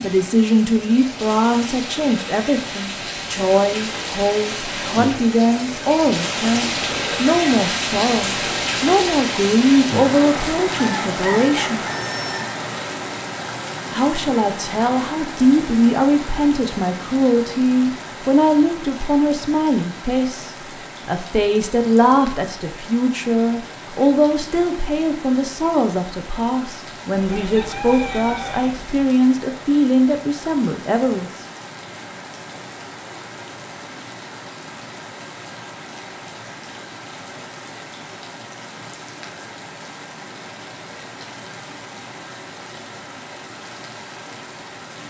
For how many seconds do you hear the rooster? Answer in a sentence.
The rooster can be heard for 4 seconds in total.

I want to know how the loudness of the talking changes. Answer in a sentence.
The loudness of the talking stays about the same.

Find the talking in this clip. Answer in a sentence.
You can hear the talking from 0.0 to 11.8 s and from 13.9 to 31.3 s.